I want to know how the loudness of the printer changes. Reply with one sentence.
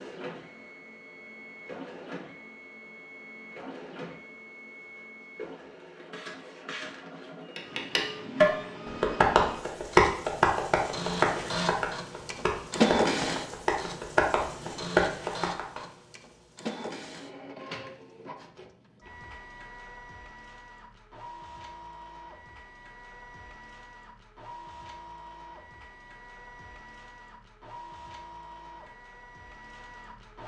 The volume of the printer goes up, then down.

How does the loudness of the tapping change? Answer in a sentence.
The loudness of the tapping goes down, then up.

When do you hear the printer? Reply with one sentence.
The printer can be heard from 0.0 to 30.4 s.